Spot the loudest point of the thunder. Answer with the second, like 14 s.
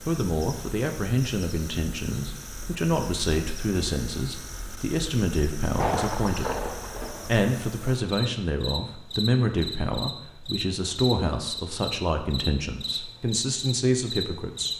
6 s.